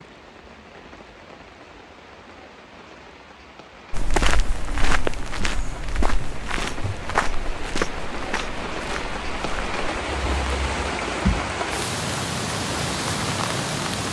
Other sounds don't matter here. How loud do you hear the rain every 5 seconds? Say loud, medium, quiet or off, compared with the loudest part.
quiet, medium, loud.